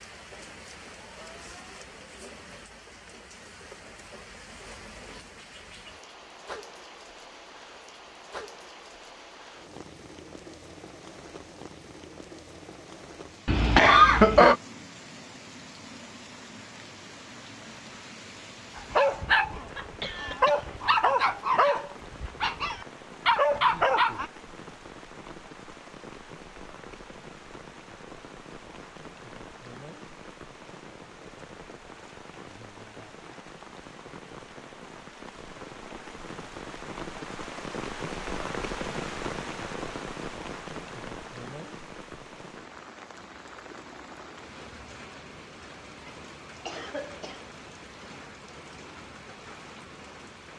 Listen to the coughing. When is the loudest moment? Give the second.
14 s.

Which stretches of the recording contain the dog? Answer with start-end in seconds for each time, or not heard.
18.8-24.3.